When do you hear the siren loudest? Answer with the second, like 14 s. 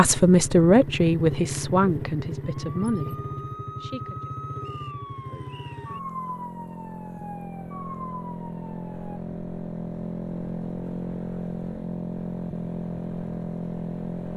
6 s.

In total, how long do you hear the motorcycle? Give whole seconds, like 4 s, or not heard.
14 s.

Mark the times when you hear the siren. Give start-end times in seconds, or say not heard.
2.5-9.2.